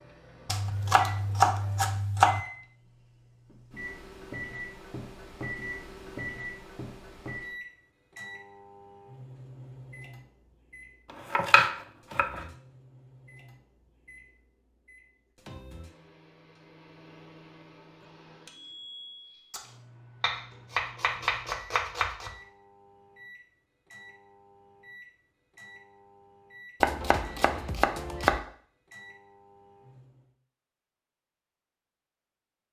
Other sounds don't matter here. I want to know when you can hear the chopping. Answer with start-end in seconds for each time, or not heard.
0.5-2.4, 11.3-12.4, 20.2-22.4, 26.8-28.4.